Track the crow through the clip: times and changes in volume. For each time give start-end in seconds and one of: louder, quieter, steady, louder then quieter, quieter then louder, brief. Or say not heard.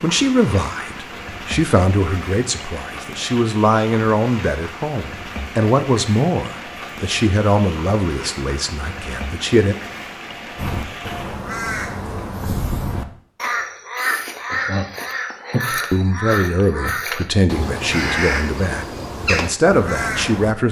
10.6-20.6 steady.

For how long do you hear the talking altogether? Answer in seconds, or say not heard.
15 s.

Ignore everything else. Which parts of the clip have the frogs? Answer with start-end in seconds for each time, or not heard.
not heard.